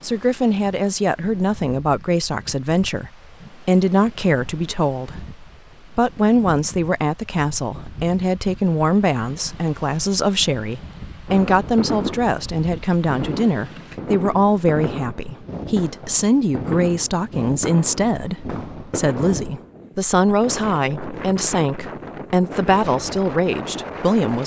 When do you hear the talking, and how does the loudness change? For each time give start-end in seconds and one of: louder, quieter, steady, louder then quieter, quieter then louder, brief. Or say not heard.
0.0-24.4 steady.